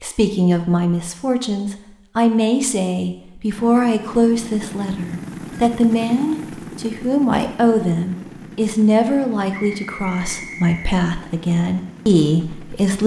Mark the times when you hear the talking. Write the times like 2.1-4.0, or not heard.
0.0-13.0.